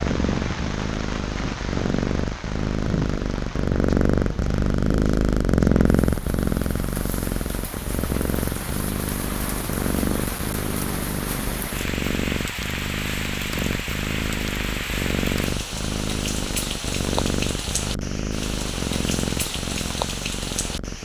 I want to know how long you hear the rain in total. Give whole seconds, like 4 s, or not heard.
21 s.